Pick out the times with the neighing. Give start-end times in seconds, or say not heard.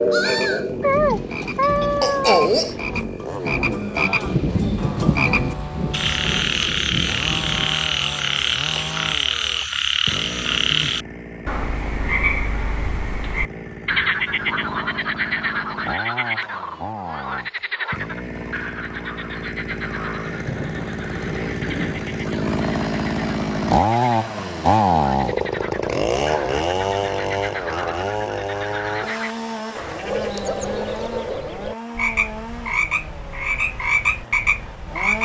not heard.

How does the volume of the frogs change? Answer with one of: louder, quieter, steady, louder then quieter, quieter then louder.
quieter then louder.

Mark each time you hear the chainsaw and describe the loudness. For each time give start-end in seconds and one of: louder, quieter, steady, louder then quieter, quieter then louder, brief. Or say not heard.
0.0-35.2 louder then quieter.